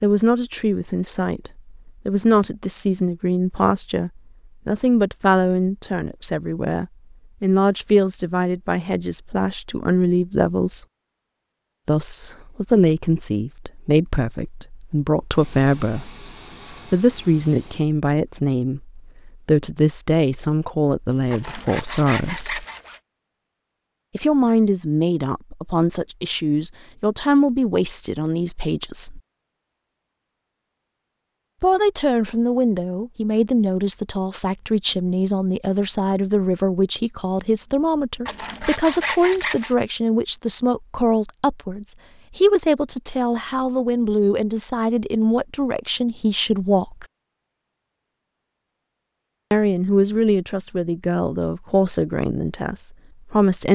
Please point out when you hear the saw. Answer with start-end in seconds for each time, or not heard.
21.3-23.0, 38.2-39.8.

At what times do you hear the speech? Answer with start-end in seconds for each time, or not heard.
0.0-10.8, 11.8-16.2, 16.9-22.6, 24.1-29.2, 31.6-47.0, 49.5-53.7.